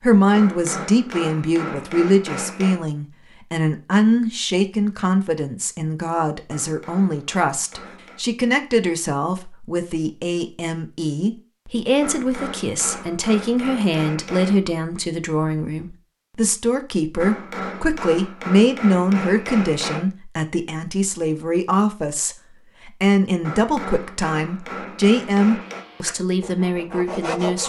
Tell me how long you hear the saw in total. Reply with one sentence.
You can hear the saw for 2 seconds altogether.